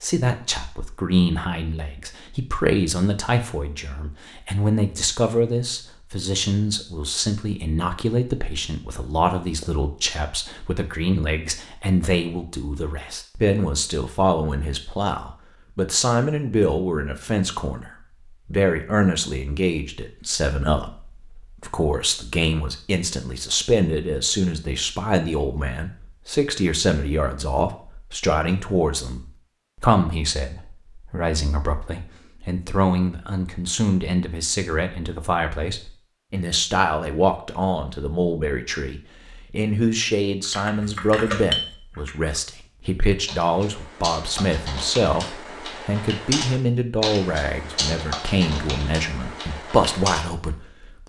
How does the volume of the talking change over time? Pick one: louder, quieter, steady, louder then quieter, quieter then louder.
steady.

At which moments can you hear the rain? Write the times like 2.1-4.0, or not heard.
not heard.